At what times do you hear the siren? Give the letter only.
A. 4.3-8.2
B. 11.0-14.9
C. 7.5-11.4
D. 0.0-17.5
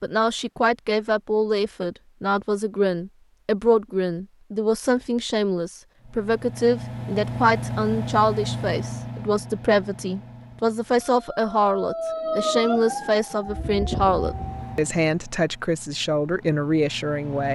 B.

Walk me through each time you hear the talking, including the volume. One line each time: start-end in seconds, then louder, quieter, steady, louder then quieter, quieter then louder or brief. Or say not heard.
0.0-17.5 steady.